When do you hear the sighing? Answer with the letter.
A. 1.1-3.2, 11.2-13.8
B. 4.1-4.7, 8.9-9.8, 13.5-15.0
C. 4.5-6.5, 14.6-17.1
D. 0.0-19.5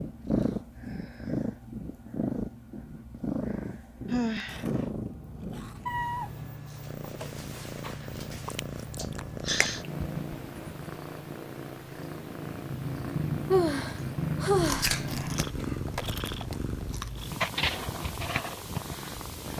B.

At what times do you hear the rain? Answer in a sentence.
You can't hear the rain here.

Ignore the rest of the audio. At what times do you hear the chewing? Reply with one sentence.
The chewing can be heard from 4.5 to 6.5 s and from 14.6 to 17.1 s.